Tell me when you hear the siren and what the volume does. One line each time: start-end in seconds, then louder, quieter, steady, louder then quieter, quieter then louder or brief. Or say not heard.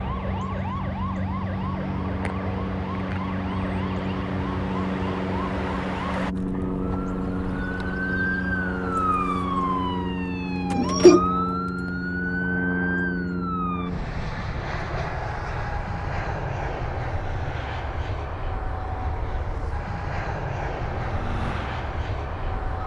0.0-13.9 louder
20.9-22.8 brief.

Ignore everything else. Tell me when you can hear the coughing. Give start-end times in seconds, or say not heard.
10.8-11.2.